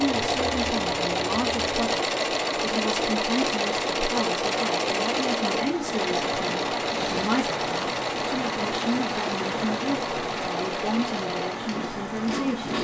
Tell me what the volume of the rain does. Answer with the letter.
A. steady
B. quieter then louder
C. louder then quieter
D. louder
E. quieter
D.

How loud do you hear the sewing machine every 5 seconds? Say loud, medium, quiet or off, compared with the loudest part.
loud, loud, medium.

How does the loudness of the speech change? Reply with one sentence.
The loudness of the speech stays about the same.